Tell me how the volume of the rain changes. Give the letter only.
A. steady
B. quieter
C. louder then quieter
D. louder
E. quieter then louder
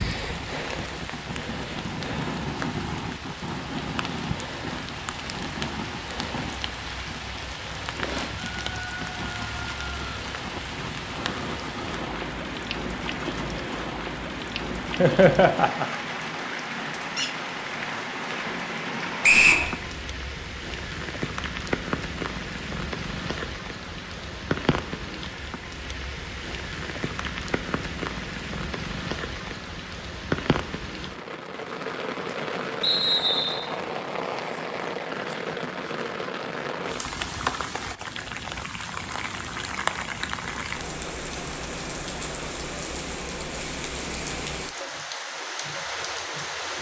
A.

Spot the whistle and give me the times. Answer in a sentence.
You can hear the whistle from 19.2 to 19.6 s and from 32.8 to 33.6 s.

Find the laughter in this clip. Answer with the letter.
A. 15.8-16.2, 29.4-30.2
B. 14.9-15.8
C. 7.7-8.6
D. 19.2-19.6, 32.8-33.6
B.